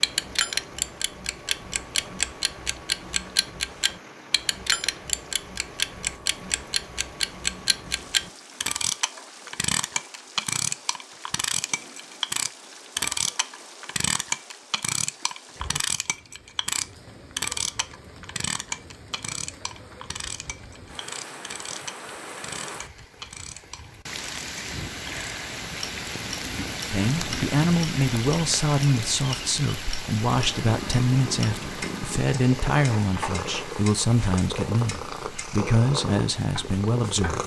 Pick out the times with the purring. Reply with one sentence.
The purring can be heard from 30.2 to 37.4 s.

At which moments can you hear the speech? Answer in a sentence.
You can hear the speech from 26.9 to 37.4 s.